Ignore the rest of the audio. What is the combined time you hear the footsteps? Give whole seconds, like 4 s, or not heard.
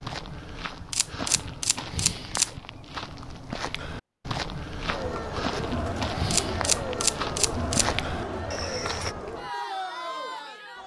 9 s.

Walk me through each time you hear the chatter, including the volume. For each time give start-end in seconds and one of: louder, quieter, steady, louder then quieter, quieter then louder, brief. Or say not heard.
4.8-10.8 steady.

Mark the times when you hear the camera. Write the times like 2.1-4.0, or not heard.
0.9-2.5, 6.3-7.8.